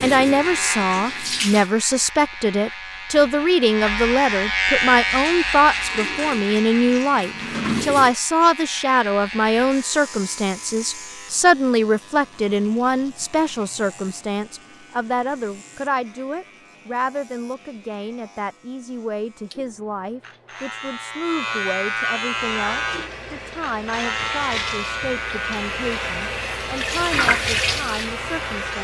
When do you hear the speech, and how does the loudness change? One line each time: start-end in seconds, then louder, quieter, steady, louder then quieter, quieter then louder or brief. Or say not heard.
0.0-28.7 quieter.